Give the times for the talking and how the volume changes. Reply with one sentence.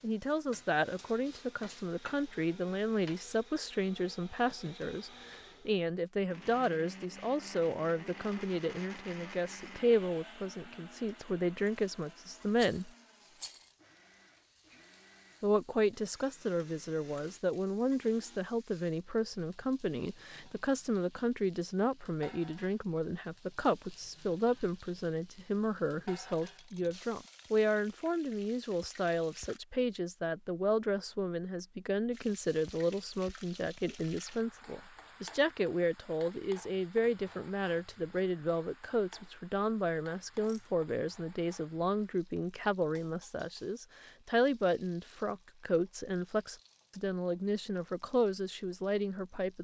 You can hear the talking from 0.0 to 12.9 s, at a steady volume; and from 15.4 to 49.5 s, at a steady volume.